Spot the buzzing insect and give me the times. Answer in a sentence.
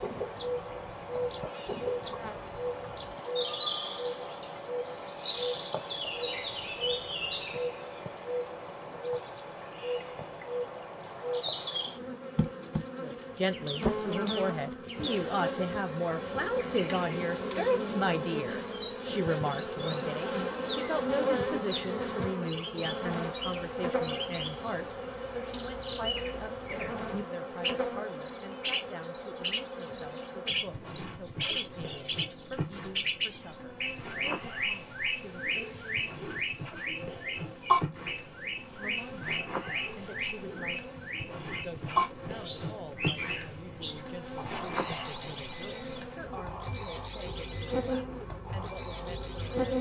You can hear the buzzing insect from 0.0 to 49.7 s.